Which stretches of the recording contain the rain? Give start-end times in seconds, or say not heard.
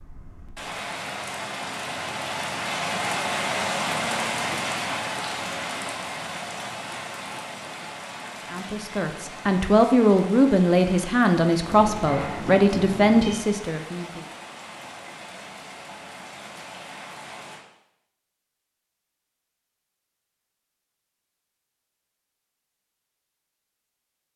0.0-17.6.